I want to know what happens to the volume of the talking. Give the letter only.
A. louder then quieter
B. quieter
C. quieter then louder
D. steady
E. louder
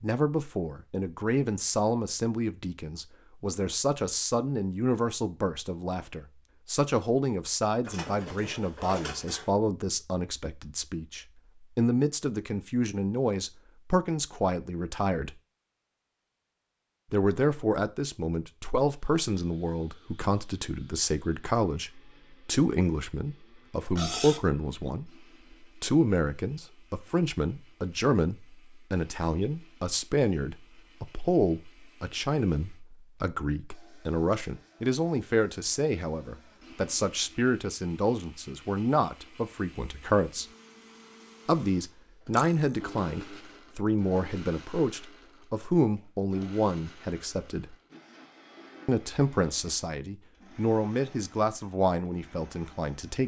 D.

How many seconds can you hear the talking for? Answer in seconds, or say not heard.
49 s.